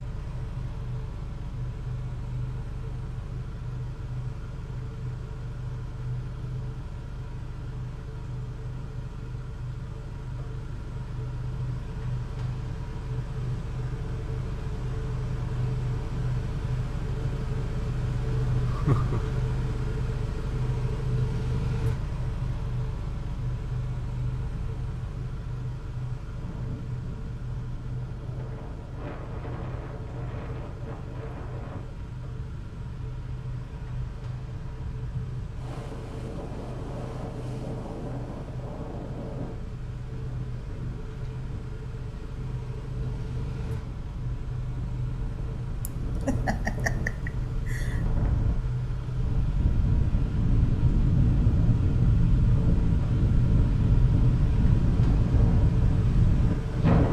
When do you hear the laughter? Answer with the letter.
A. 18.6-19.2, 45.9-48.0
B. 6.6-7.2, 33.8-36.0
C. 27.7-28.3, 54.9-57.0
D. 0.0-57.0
A.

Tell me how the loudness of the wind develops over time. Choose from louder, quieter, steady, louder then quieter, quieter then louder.
louder.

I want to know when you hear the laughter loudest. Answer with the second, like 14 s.
19 s.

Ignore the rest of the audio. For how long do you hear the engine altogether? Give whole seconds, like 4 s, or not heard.
57 s.